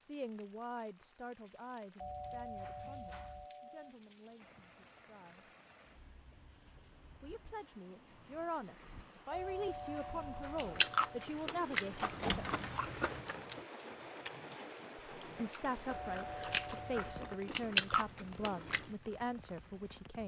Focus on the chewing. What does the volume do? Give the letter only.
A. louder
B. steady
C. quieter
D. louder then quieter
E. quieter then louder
E.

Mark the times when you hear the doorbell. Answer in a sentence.
The doorbell can be heard from 1.9 to 4.0 s, from 9.3 to 11.3 s and from 15.8 to 17.4 s.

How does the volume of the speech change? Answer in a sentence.
The loudness of the speech goes down, then up.